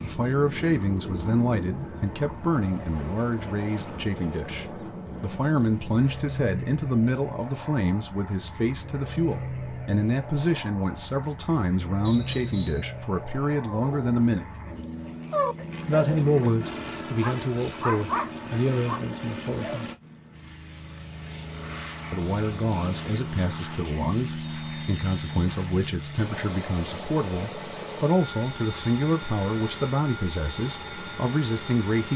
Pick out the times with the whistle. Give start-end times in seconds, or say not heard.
12.1-12.9, 24.4-25.5.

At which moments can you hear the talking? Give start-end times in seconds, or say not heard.
0.0-14.4, 15.8-19.9, 22.1-32.1.